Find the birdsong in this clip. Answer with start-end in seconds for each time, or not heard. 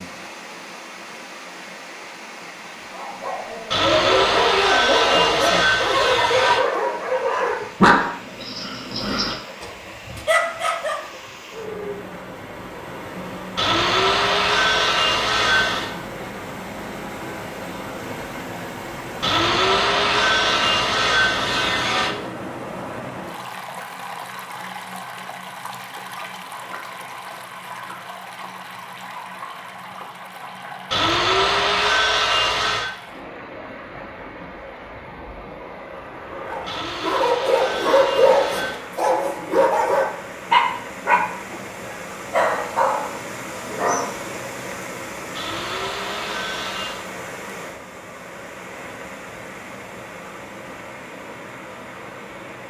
not heard.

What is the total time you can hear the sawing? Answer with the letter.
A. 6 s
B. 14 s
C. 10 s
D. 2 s
B.